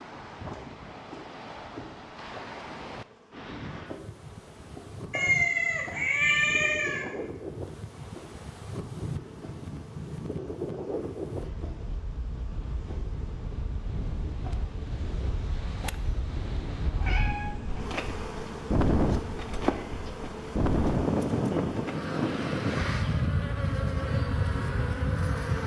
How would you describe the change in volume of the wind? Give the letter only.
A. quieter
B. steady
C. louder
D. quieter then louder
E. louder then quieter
C.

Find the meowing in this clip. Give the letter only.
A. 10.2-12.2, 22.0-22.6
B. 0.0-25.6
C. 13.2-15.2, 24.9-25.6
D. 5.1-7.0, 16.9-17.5
D.